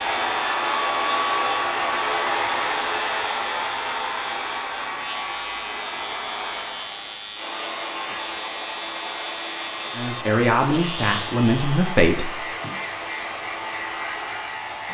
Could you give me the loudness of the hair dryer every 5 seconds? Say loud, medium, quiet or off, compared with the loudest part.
loud, medium, medium.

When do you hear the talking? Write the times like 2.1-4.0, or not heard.
9.9-12.3.